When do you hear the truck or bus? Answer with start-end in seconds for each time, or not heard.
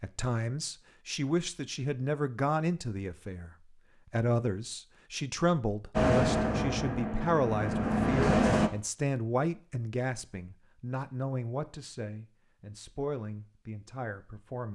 6.0-8.7.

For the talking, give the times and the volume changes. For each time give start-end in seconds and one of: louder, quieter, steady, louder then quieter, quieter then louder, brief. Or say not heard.
0.0-14.6 quieter.